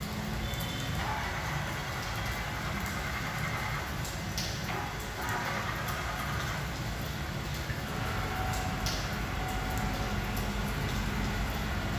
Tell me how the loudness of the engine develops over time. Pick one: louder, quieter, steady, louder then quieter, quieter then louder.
steady.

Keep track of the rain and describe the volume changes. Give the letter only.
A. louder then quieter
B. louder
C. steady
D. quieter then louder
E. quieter
C.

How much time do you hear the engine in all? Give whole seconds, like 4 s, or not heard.
12 s.